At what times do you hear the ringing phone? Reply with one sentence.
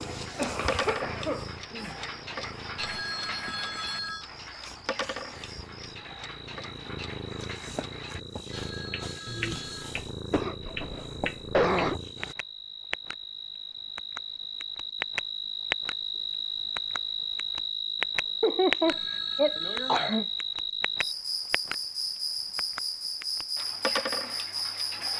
You can hear the ringing phone from 2.8 to 4.2 s, from 8.5 to 9.9 s and from 18.9 to 20.2 s.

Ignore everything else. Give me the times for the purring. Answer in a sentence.
The purring can be heard from 0.0 to 12.3 s.